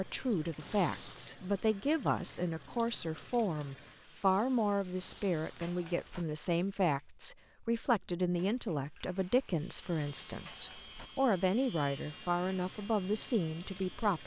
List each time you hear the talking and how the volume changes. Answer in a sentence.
You can hear the talking from 0.0 to 14.2 s, at a steady volume.